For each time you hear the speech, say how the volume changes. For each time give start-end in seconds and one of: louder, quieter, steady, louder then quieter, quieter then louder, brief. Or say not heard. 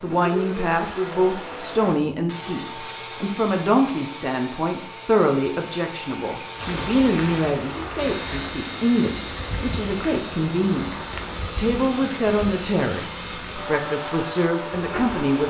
0.0-15.4 steady.